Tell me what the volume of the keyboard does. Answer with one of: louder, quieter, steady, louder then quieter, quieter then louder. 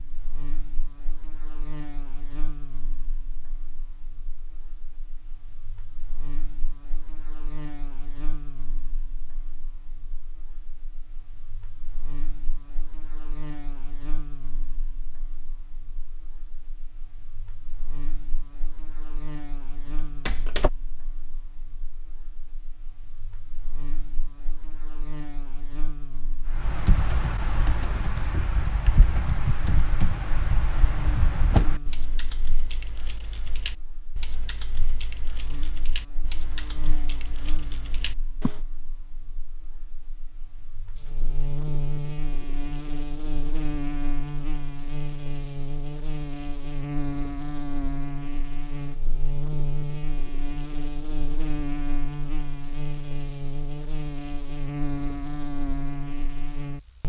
quieter.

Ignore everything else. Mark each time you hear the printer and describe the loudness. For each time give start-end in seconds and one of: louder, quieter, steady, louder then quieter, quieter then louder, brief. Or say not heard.
not heard.